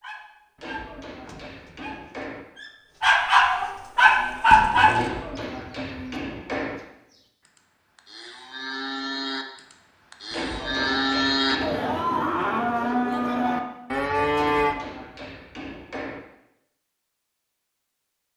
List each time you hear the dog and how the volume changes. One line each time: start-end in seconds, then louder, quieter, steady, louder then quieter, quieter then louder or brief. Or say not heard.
0.0-5.0 quieter then louder.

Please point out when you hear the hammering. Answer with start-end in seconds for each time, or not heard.
0.6-2.5, 4.9-6.8, 10.3-11.8, 14.3-16.2.